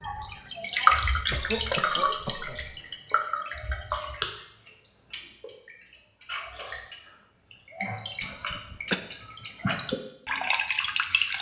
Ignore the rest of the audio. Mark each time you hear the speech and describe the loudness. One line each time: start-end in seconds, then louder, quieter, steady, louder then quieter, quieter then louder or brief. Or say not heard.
not heard.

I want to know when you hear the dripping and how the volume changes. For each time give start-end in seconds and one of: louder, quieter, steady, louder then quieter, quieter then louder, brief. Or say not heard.
0.0-11.3 quieter then louder.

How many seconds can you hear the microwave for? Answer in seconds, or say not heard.
not heard.